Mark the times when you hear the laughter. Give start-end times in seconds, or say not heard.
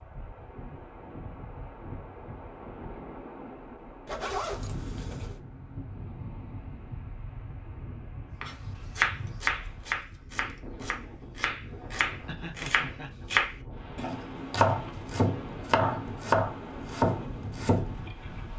12.2-13.2.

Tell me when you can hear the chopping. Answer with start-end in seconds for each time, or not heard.
8.4-17.9.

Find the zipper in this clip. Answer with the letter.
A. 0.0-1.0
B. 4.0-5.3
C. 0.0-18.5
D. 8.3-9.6
B.